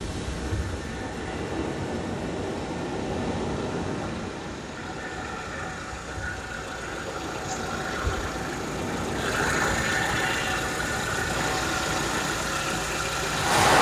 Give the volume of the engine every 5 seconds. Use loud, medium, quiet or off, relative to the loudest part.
quiet, loud, loud.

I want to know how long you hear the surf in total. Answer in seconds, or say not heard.
14 s.